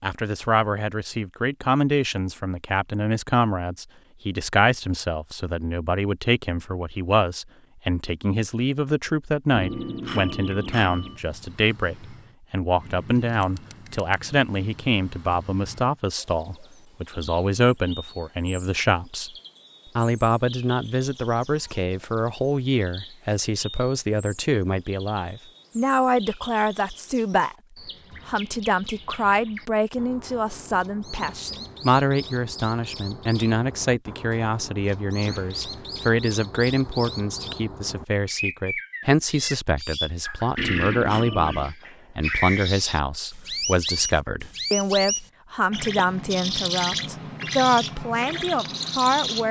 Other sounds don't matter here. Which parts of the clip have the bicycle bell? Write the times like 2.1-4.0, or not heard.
9.5-11.2, 40.5-41.7.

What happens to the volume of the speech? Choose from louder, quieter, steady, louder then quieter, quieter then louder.
steady.